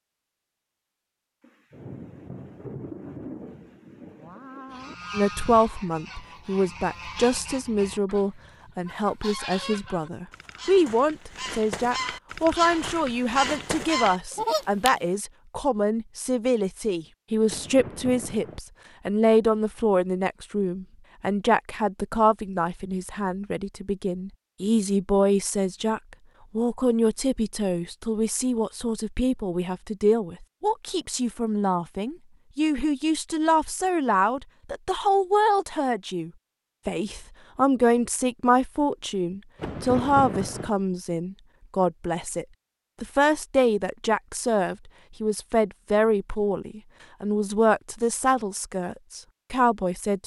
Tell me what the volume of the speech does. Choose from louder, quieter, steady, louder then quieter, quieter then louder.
steady.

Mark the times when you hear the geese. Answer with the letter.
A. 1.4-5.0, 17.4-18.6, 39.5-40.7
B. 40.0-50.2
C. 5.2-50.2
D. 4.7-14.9
D.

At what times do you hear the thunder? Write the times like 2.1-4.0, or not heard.
1.4-5.0, 17.4-18.6, 39.5-40.7.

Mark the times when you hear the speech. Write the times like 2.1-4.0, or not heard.
5.2-50.2.